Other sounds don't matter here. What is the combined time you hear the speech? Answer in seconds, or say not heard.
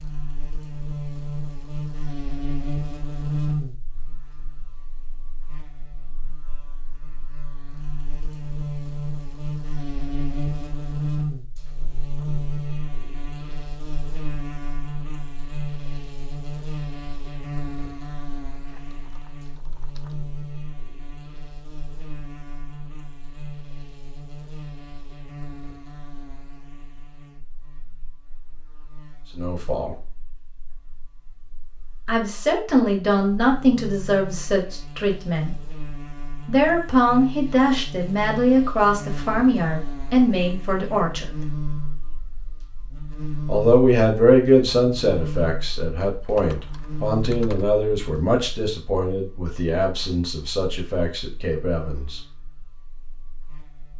18 s.